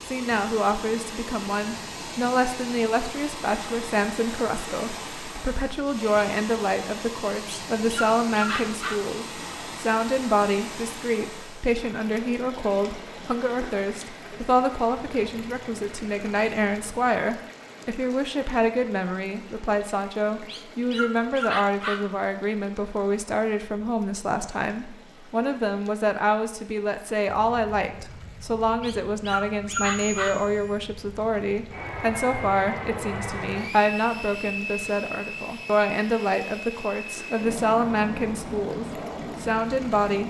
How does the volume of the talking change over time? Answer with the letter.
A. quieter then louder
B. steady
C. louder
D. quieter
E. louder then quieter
B.